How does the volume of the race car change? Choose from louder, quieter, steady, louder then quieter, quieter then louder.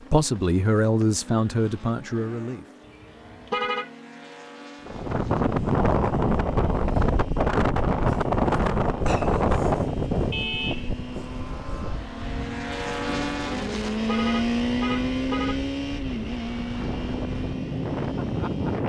louder.